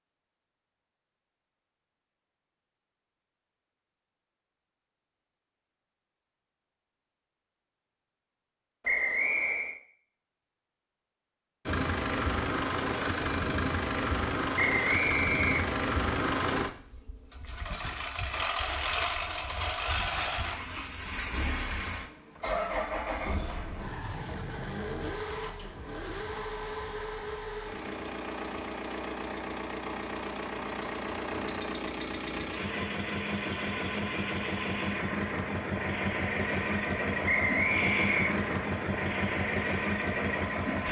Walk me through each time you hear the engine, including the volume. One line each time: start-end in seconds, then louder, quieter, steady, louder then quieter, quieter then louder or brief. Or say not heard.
11.7-40.8 quieter then louder.